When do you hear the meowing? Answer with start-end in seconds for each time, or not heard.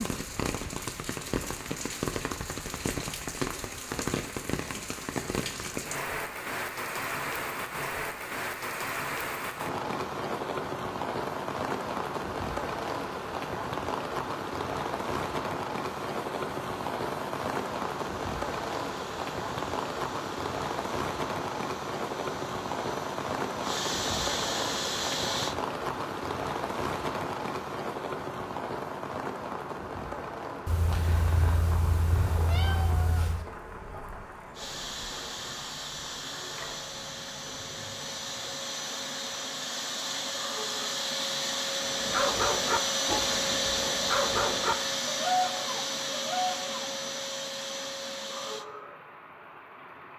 30.6-33.5.